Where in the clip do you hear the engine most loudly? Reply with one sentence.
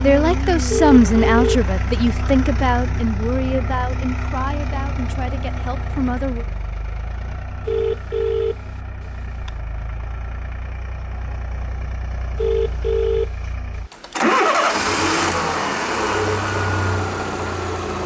The loudest moment of the engine is at 15 seconds.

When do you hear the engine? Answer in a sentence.
You can hear the engine from 0.0 to 18.0 s.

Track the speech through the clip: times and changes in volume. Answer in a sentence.
The speech can be heard from 0.0 to 6.5 s, getting quieter.